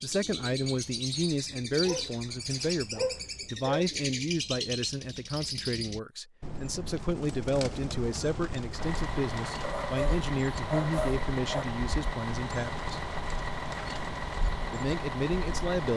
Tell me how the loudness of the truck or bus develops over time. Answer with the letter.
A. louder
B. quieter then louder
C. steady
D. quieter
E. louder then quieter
C.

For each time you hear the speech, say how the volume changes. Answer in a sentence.
You can hear the speech from 0.0 to 13.0 s, at a steady volume; and briefly from 14.7 to 15.9 s.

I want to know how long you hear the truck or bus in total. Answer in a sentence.
The truck or bus can be heard for 7 seconds in total.